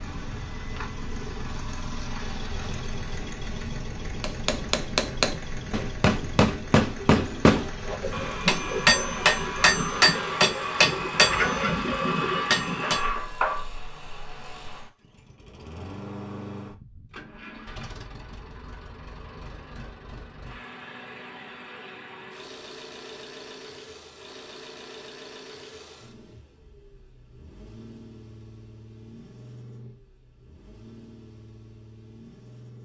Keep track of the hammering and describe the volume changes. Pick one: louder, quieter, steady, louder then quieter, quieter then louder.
steady.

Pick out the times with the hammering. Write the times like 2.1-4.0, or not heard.
4.2-13.1.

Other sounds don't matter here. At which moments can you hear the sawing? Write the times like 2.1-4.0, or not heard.
7.8-13.8.